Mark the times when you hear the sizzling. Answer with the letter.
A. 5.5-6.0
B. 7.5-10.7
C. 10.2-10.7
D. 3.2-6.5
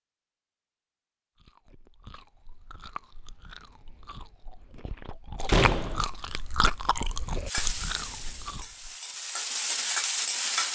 B.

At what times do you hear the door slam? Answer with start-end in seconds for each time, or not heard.
5.5-6.0.